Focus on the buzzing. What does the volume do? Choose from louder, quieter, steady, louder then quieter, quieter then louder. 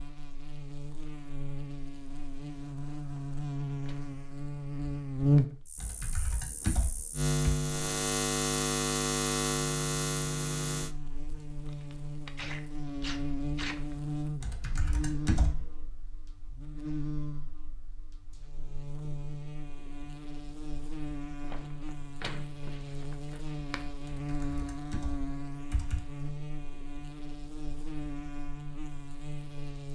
quieter.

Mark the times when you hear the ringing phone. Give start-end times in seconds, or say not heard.
not heard.